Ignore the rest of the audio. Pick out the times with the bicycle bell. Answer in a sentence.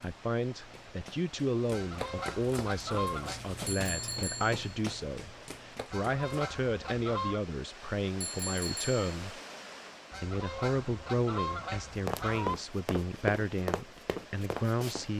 You can hear the bicycle bell from 3.6 to 4.6 s and from 8.2 to 9.2 s.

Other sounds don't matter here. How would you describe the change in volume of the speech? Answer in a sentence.
The volume of the speech stays about the same.